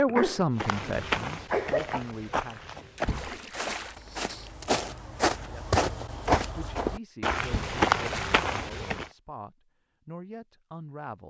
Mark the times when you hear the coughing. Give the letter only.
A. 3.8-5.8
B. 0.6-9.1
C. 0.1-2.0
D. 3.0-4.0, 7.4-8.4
C.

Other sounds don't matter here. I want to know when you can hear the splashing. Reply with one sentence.
The splashing can be heard from 3.0 to 4.0 s and from 7.4 to 8.4 s.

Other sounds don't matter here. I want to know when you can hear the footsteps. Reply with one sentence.
The footsteps can be heard from 0.6 to 9.1 s.